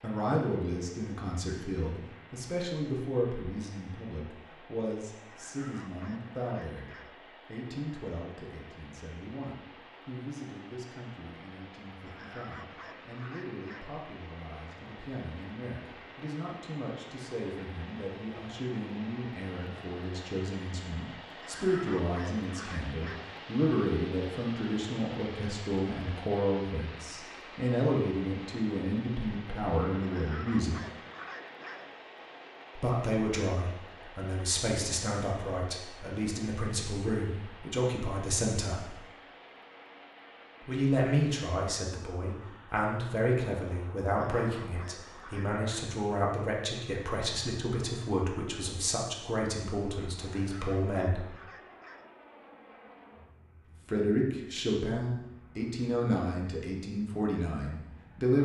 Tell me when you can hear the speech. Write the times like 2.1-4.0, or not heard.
0.0-30.8, 32.8-39.0, 40.6-51.2, 53.9-58.4.